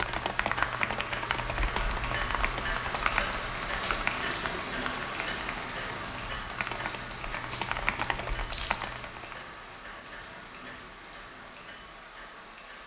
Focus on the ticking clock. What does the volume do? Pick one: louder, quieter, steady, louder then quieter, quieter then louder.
quieter.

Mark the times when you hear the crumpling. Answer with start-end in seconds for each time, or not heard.
3.1-4.7, 6.8-8.8.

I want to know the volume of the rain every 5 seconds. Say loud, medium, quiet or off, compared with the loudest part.
loud, loud, medium.